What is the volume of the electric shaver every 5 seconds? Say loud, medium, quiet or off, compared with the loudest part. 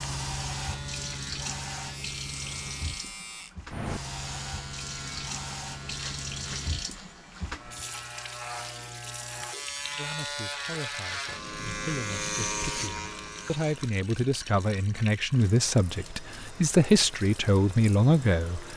medium, medium, loud, off.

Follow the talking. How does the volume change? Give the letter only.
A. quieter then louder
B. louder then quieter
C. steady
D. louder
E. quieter
D.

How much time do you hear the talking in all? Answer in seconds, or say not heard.
9 s.